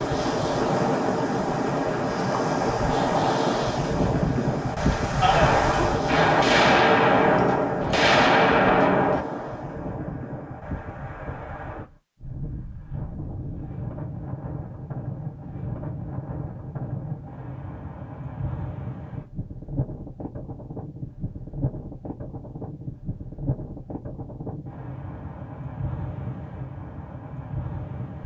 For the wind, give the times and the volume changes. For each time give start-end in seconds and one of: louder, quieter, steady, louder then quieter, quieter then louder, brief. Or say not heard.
0.0-28.2 quieter.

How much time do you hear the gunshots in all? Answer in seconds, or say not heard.
4 s.